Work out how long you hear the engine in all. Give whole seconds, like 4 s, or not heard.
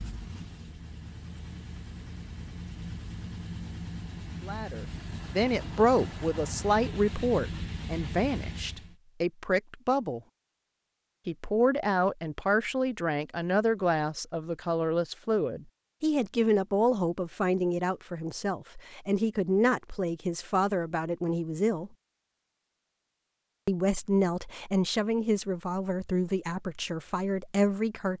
9 s.